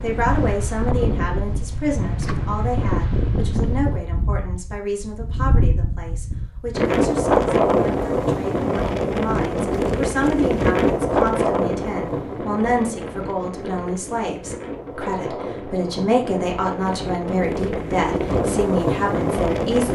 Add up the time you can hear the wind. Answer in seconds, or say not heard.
20 s.